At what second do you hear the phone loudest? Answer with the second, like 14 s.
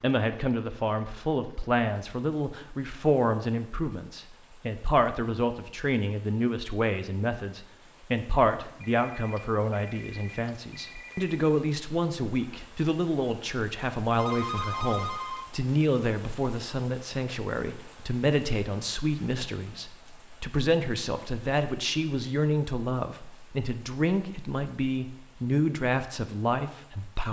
15 s.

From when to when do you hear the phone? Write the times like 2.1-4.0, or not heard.
9.0-11.4, 14.2-15.4.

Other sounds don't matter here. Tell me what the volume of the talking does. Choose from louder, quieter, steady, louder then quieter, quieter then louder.
steady.